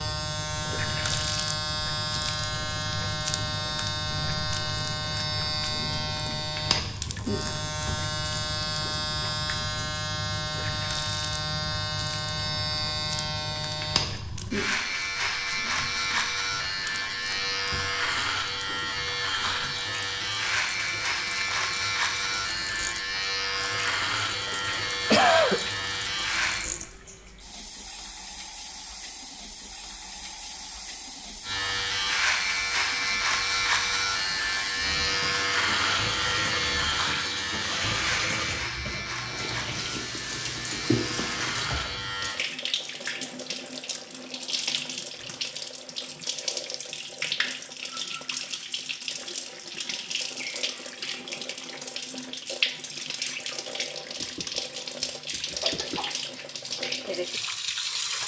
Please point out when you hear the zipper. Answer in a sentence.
You can't hear the zipper here.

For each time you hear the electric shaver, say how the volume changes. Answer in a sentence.
The electric shaver can be heard from 0.0 to 26.6 s, at a steady volume; and from 31.4 to 42.4 s, getting quieter.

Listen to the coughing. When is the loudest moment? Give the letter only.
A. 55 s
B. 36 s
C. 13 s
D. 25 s
D.